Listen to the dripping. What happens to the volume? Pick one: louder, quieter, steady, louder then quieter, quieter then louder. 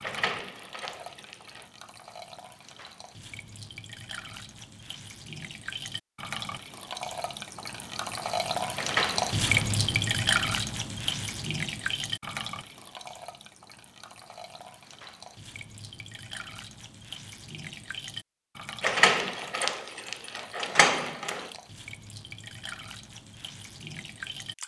louder then quieter.